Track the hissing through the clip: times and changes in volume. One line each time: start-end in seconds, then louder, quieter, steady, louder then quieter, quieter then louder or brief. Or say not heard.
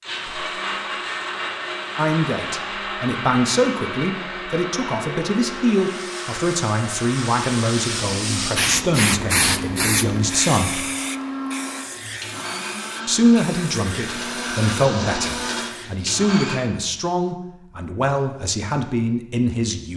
5.7-15.9 louder then quieter.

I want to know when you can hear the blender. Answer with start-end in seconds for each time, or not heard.
0.0-16.6.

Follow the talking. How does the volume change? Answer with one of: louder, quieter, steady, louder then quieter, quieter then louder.
steady.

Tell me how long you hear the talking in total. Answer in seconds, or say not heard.
16 s.